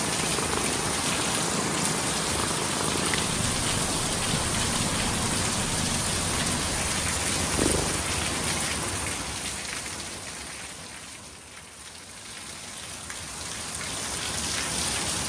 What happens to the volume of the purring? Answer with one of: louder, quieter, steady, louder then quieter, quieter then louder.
steady.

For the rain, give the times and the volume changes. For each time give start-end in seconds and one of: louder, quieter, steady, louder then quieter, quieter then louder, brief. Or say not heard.
0.0-15.2 quieter.